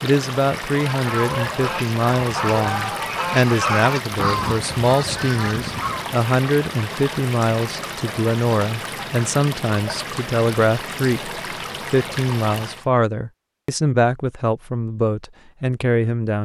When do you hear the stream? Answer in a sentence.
The stream can be heard from 0.0 to 12.8 s.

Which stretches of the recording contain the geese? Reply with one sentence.
You can hear the geese from 0.7 to 6.2 s.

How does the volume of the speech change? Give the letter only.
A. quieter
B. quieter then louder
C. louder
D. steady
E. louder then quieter
D.